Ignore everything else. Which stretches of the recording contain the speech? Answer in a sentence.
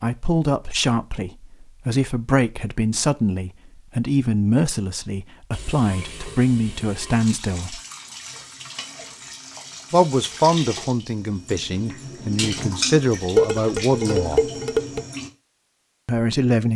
You can hear the speech from 0.0 to 7.8 s, from 9.9 to 14.4 s and from 16.1 to 16.7 s.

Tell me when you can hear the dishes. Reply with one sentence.
The dishes can be heard from 13.3 to 15.0 s.